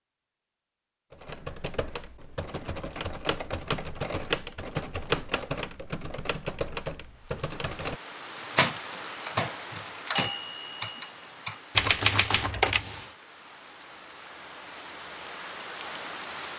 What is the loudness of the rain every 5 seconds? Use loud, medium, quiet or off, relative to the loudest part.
off, loud, medium, loud.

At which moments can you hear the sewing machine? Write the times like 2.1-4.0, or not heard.
not heard.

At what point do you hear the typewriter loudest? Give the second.
12 s.